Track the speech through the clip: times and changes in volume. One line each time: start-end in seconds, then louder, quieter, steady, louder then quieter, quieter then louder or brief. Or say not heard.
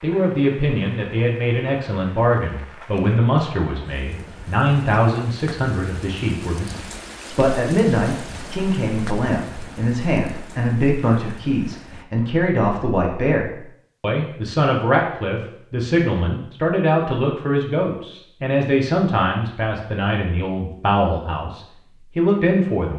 0.0-22.9 steady.